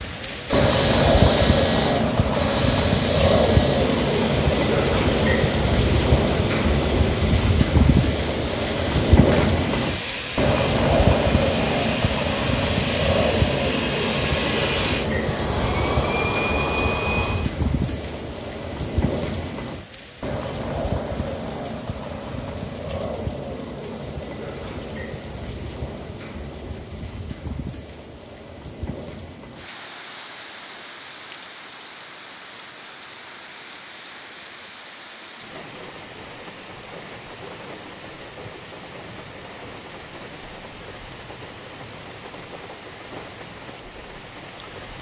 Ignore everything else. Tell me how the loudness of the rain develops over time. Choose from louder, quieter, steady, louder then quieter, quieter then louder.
quieter.